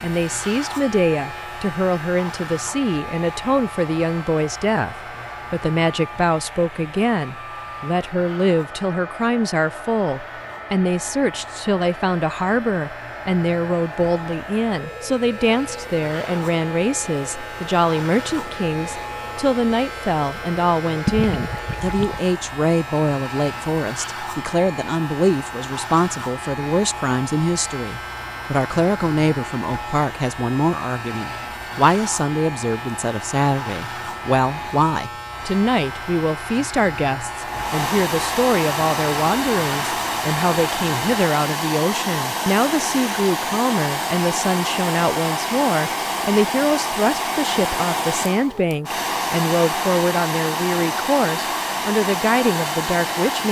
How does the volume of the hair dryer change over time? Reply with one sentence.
The volume of the hair dryer goes up.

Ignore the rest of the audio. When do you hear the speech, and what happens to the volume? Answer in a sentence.
You can hear the speech from 0.0 to 53.4 s, at a steady volume.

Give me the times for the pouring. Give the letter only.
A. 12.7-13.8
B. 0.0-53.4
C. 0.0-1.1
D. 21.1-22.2
D.